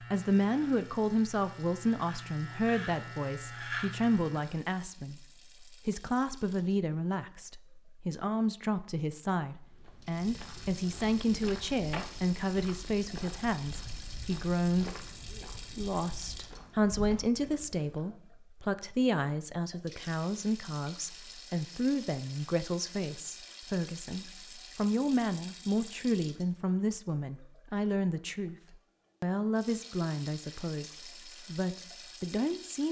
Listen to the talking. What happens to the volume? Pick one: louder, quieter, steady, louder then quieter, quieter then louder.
steady.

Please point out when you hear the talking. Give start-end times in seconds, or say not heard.
0.0-15.1, 15.8-28.6, 29.2-32.8.